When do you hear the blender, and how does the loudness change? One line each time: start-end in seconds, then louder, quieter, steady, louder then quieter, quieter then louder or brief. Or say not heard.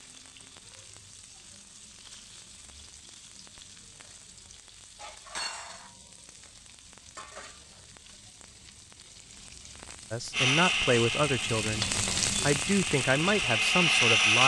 10.3-14.4 quieter then louder.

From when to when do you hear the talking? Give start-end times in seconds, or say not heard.
10.1-14.4.